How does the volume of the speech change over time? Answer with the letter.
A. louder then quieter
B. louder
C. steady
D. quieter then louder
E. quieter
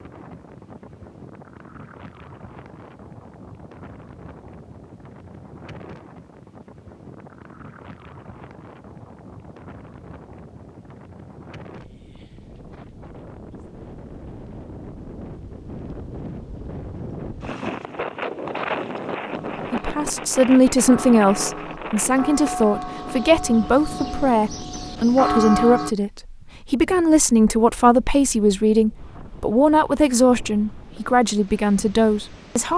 C.